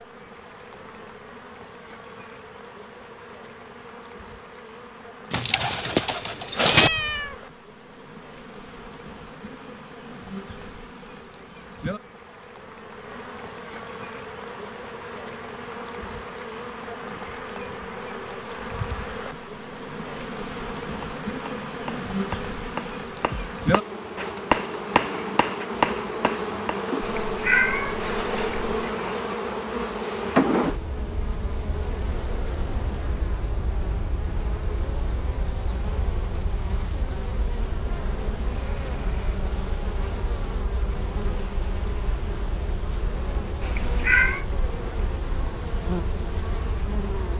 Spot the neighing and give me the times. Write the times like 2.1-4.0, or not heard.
not heard.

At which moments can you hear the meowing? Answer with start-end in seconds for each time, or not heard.
6.7-7.3, 27.0-28.8, 43.6-44.5.